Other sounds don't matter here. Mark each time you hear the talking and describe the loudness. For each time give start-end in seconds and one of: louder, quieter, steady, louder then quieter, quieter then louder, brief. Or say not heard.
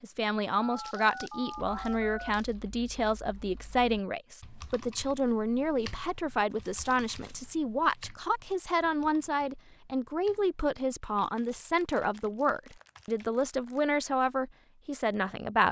0.0-15.6 steady.